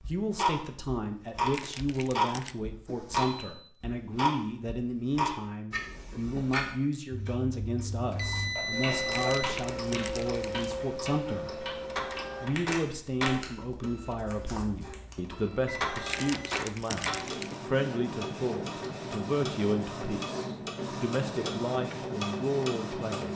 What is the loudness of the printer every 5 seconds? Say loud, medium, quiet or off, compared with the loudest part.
off, medium, loud, loud, loud.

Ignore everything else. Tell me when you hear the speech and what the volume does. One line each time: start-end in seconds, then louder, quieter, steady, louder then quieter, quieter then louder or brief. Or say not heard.
0.0-11.7 steady
12.4-23.3 steady.